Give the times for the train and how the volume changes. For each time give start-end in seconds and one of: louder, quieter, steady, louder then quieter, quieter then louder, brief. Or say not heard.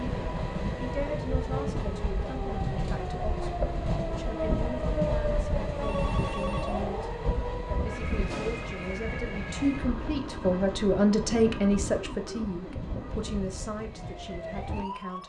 0.0-15.2 quieter.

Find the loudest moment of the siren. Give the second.
5 s.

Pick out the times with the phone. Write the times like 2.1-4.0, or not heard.
5.8-6.9.